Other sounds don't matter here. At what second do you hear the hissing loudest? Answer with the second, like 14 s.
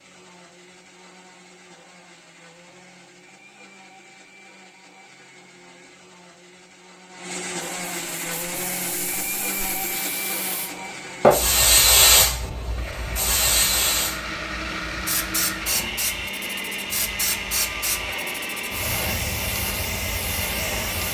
12 s.